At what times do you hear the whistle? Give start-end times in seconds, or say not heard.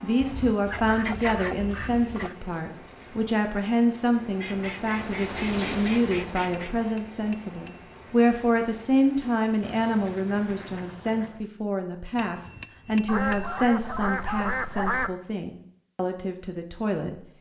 not heard.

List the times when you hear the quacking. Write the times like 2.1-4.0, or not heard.
0.2-2.4, 4.4-6.8, 9.6-11.5, 13.1-15.1.